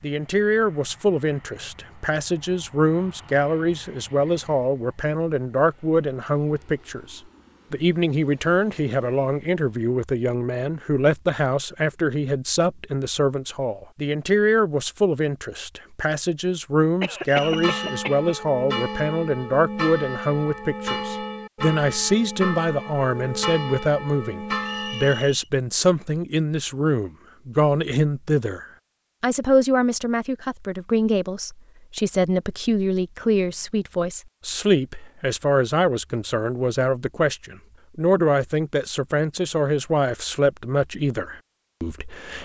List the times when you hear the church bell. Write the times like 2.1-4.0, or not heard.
17.4-25.3.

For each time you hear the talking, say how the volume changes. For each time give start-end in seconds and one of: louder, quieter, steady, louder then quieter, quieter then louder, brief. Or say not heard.
0.0-42.3 steady.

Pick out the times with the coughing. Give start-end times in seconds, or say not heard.
17.0-18.4.